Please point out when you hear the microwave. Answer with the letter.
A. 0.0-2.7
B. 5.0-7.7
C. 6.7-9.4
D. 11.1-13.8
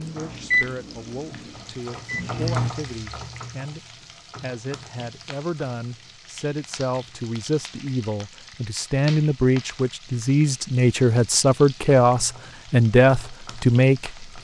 A.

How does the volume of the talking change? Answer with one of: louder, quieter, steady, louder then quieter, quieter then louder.
louder.